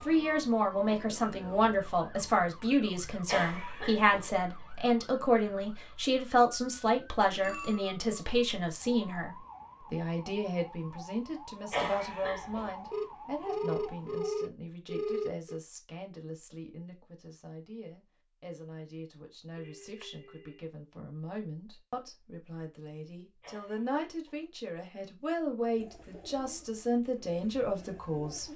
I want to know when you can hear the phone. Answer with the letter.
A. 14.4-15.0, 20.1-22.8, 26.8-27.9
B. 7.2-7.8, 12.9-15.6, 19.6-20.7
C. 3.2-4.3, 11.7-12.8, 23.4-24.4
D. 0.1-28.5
B.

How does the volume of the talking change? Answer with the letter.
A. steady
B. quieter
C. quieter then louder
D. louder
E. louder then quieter
C.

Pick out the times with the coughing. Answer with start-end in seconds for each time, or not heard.
3.2-4.3, 11.7-12.8, 23.4-24.4.